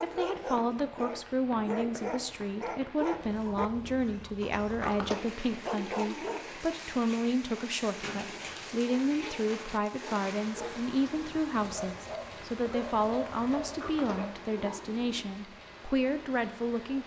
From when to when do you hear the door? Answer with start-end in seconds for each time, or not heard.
4.4-5.3, 13.7-15.2.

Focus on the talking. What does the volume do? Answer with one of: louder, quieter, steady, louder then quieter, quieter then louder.
steady.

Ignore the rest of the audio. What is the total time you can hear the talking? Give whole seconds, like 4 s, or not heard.
17 s.